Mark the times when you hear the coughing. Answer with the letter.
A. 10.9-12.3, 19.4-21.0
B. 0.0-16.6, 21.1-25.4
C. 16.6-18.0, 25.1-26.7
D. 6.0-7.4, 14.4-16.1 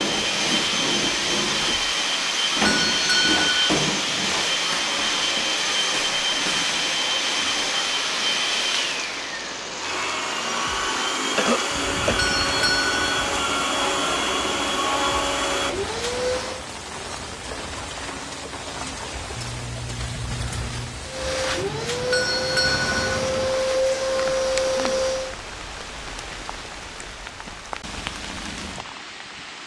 A.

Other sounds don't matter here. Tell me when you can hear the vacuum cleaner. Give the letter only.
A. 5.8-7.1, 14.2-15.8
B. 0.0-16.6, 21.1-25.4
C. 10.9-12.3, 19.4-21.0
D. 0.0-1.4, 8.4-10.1
B.